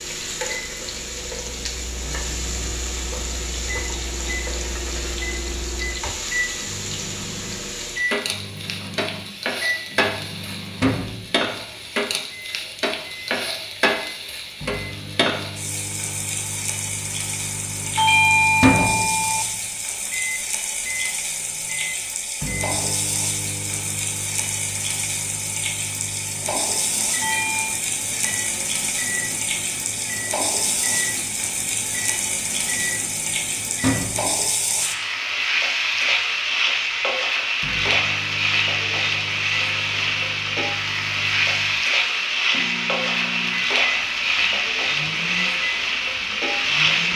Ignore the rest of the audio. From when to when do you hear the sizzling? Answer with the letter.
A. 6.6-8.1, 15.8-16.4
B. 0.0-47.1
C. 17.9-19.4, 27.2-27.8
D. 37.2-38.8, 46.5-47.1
B.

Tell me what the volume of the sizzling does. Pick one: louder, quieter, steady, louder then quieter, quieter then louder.
louder.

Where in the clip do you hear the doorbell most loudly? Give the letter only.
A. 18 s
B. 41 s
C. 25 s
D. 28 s
A.